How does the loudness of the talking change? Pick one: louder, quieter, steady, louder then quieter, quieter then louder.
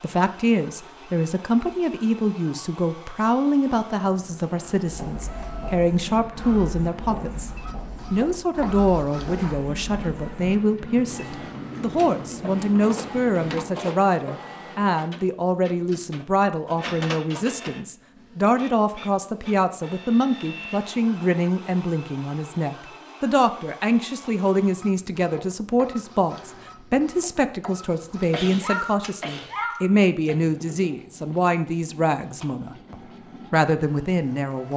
steady.